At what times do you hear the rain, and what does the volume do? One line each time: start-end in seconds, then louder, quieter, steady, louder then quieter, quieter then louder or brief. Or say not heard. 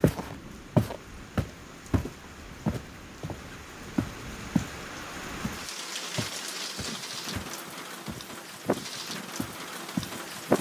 0.0-10.5 louder.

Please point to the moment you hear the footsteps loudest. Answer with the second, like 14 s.
1 s.